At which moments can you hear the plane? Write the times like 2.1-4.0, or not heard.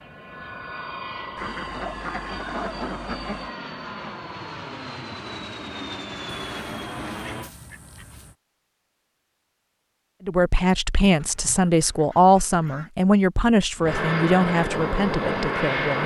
0.0-7.5, 13.8-16.0.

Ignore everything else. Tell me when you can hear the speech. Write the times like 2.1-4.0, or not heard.
10.2-16.0.